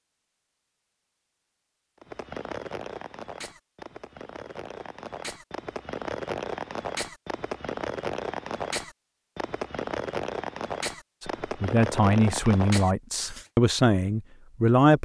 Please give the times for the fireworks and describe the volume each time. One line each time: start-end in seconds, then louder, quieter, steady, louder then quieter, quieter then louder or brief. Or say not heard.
2.0-13.5 louder.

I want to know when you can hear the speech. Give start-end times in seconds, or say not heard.
11.2-15.0.